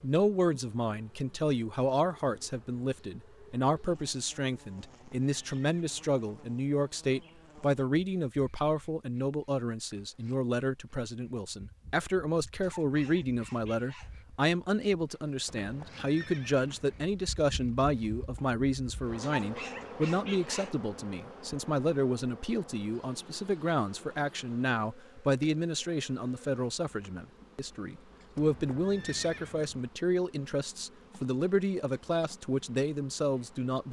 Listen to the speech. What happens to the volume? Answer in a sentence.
The loudness of the speech stays about the same.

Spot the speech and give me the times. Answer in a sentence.
The speech can be heard from 0.0 to 33.8 s.